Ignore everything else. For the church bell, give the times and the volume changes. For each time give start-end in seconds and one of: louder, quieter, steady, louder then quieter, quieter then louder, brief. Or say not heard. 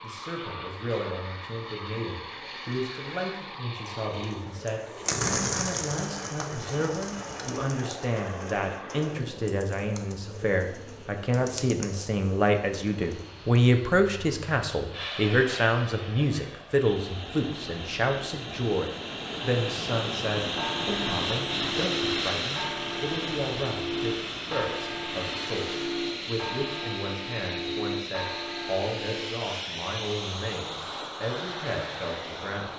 20.6-29.4 steady.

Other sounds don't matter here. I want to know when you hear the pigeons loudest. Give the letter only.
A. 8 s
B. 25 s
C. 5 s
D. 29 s
C.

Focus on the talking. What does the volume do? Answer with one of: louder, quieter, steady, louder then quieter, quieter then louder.
louder then quieter.